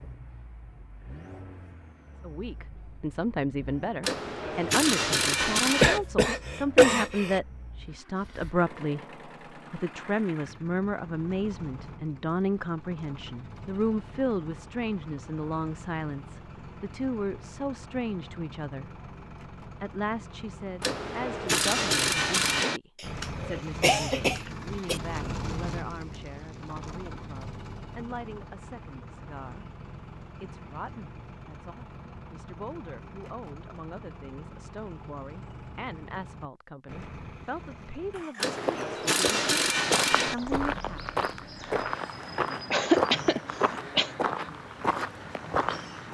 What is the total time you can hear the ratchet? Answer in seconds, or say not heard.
6 s.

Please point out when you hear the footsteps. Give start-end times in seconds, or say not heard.
38.6-46.0.